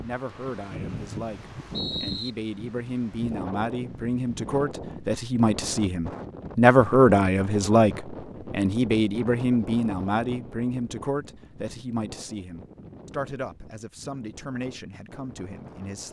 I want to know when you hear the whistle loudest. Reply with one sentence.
The loudest moment of the whistle is at 2 seconds.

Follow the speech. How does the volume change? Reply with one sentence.
The loudness of the speech goes up, then down.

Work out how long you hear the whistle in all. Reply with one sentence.
The whistle can be heard for 2 seconds in total.